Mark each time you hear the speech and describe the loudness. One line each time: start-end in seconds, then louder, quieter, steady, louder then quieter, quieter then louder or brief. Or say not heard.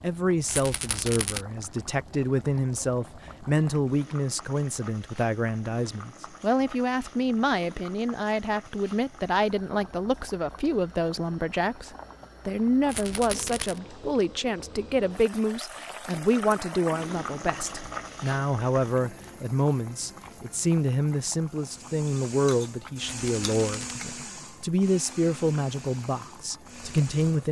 0.0-27.4 steady.